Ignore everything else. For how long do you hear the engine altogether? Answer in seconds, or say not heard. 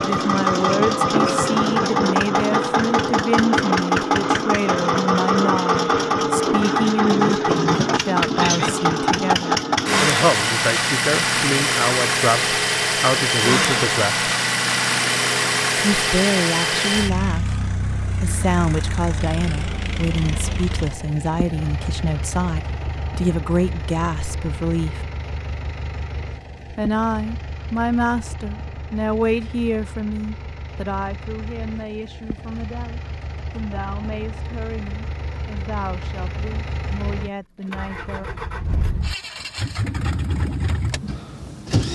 42 s.